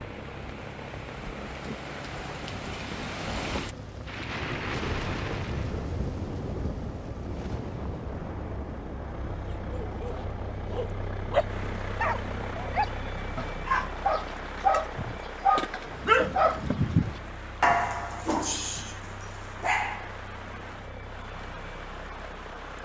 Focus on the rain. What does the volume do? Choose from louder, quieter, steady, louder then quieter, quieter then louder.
quieter.